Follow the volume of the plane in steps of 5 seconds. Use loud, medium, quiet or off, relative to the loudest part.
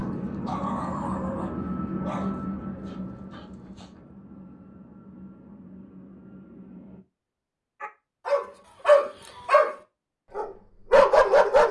loud, quiet, off.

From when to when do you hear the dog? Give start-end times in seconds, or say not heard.
0.0-3.4, 7.8-9.8, 10.3-11.6.